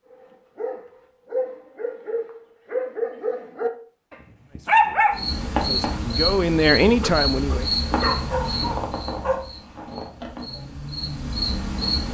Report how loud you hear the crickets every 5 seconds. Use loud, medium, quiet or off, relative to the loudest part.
off, loud, loud.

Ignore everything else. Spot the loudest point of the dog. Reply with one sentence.
The volume of the dog peaks at 5 seconds.